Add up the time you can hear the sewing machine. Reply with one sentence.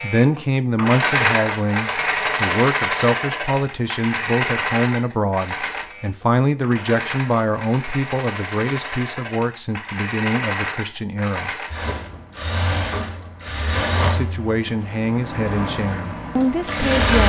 You can hear the sewing machine for 17 seconds altogether.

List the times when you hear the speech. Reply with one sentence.
The speech can be heard from 0.0 to 11.5 s and from 13.9 to 17.2 s.